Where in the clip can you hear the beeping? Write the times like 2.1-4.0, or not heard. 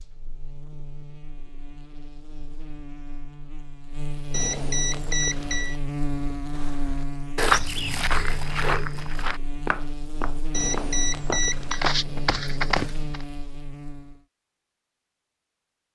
4.3-5.8, 10.5-11.8.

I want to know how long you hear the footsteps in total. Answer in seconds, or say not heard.
7 s.